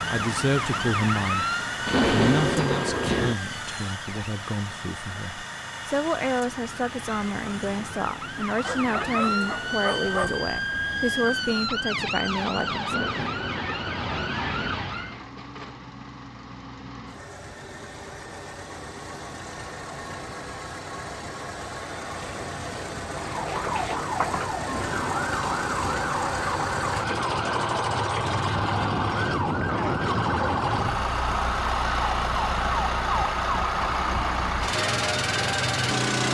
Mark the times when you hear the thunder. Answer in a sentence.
The thunder can be heard from 1.9 to 3.4 s, from 12.8 to 14.3 s and from 24.6 to 26.1 s.